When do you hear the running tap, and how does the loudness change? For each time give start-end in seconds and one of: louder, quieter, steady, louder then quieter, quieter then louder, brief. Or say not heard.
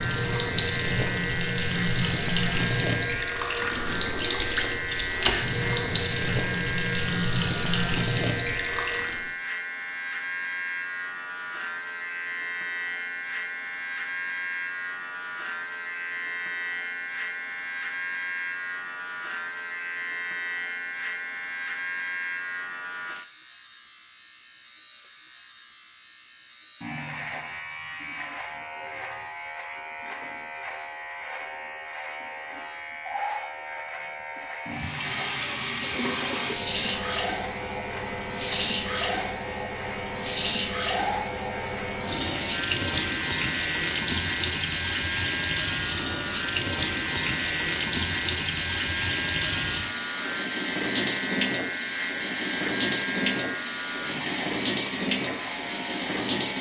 0.0-9.3 steady
34.7-56.5 steady.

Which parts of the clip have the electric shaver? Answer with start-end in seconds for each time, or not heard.
0.0-56.5.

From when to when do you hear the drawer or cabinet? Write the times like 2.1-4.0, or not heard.
not heard.